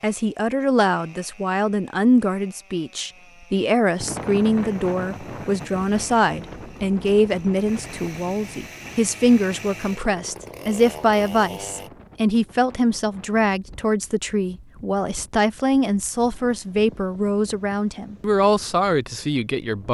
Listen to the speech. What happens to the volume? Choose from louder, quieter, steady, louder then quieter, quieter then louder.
steady.